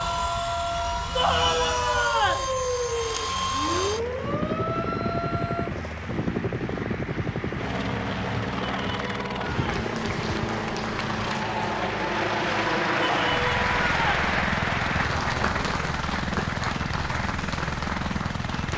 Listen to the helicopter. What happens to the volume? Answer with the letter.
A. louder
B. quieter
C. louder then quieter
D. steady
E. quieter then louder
D.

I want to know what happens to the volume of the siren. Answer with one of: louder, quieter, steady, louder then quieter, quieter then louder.
steady.